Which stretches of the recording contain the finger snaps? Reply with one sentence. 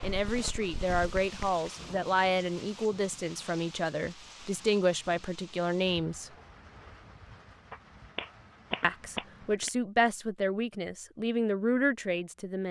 You can hear the finger snaps from 0.0 to 1.6 s and from 7.7 to 9.7 s.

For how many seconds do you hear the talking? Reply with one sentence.
You can hear the talking for 10 seconds altogether.